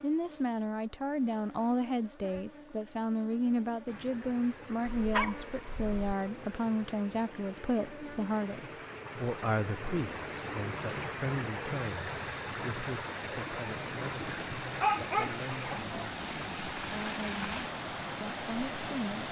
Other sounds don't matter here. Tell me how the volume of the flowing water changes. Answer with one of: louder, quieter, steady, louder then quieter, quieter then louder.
louder.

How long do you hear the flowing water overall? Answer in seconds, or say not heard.
15 s.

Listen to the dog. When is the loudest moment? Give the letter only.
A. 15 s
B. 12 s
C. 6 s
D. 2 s
A.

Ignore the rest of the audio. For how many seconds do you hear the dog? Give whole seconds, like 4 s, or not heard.
3 s.